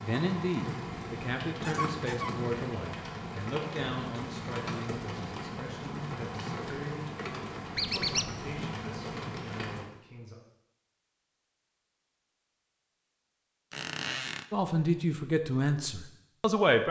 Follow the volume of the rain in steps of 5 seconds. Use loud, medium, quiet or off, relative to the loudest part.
loud, loud, off, off.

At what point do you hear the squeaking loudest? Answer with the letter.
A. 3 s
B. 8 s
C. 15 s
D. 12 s
B.